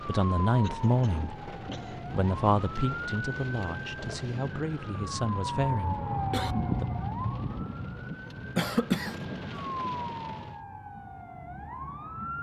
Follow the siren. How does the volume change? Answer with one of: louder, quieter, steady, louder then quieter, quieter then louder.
louder then quieter.